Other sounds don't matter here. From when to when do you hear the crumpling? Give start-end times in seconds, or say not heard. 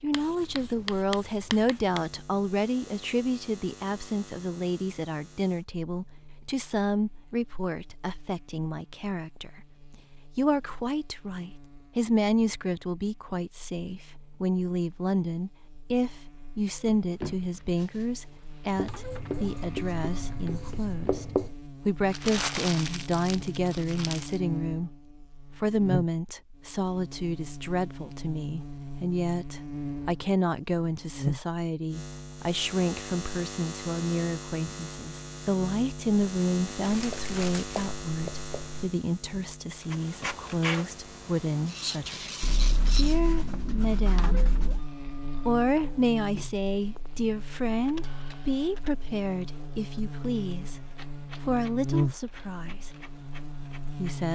22.1-24.4, 36.8-37.8.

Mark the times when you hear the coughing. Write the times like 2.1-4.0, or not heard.
not heard.